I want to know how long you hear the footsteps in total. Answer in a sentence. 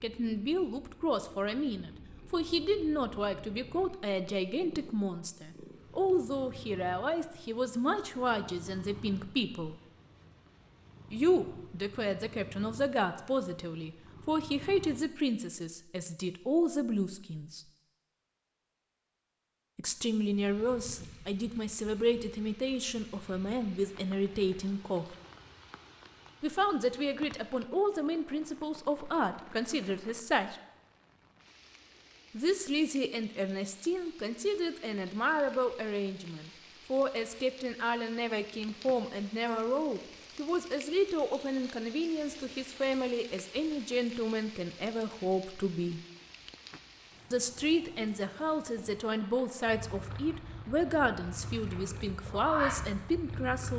You can't hear the footsteps here.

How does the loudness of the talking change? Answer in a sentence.
The loudness of the talking stays about the same.